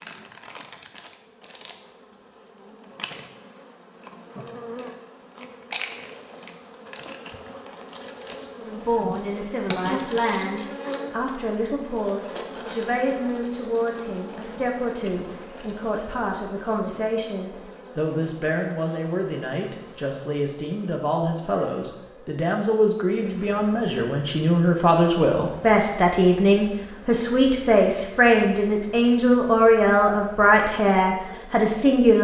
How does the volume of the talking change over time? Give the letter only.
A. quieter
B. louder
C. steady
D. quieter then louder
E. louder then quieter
B.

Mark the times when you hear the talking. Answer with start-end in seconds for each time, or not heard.
8.6-32.2.